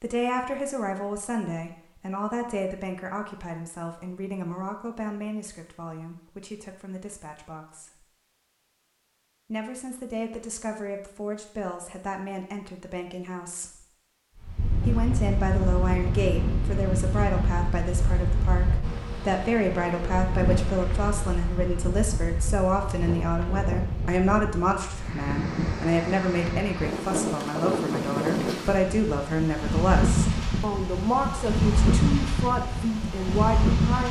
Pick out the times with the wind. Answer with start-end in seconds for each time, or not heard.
14.3-34.0.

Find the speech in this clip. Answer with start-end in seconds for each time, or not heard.
0.0-8.1, 9.5-13.8, 14.8-34.0.